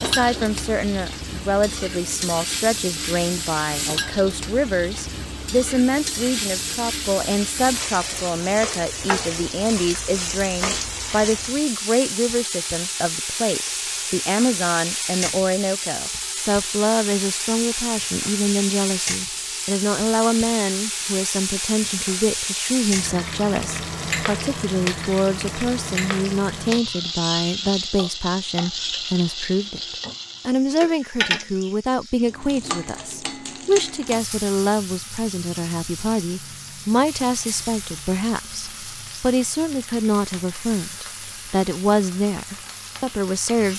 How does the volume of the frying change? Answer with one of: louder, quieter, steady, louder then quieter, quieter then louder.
quieter.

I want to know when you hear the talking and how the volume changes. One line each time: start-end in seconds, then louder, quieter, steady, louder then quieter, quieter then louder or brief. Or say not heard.
0.0-43.7 steady.